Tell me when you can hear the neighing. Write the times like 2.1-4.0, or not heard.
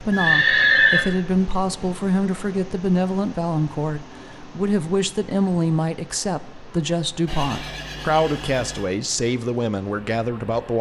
0.1-1.1, 7.2-8.9.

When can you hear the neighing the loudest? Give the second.
1 s.